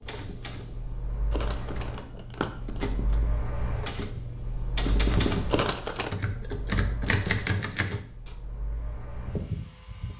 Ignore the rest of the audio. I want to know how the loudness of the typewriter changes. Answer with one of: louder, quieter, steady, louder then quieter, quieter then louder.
louder.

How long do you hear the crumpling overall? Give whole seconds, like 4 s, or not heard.
2 s.